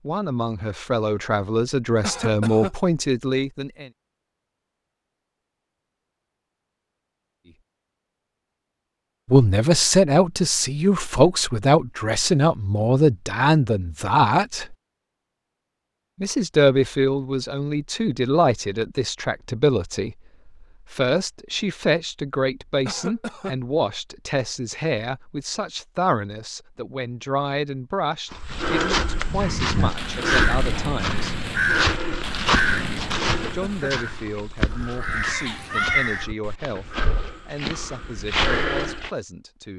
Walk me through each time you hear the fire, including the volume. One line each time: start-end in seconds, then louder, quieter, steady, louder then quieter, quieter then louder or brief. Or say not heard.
not heard.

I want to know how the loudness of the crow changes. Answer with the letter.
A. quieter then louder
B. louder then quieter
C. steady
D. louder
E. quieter
A.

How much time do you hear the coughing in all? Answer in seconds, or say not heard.
2 s.